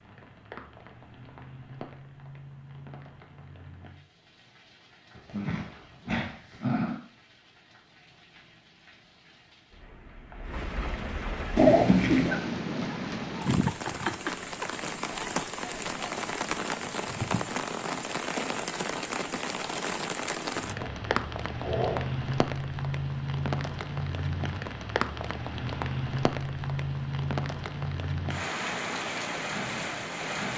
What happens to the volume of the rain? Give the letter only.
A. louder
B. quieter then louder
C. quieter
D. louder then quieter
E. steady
A.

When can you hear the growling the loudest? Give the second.
12 s.